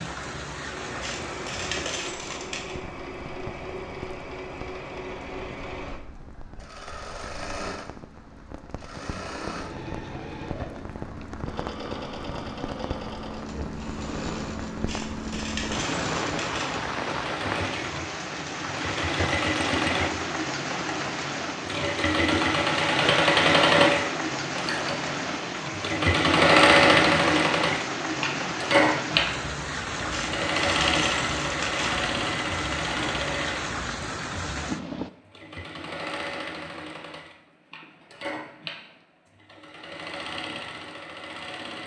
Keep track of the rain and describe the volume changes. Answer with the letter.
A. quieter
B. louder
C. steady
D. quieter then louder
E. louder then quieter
B.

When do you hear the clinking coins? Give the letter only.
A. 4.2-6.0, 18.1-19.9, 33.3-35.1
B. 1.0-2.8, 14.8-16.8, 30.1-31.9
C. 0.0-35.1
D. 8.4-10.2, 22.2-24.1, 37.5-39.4
B.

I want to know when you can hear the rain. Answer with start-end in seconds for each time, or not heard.
0.0-35.1.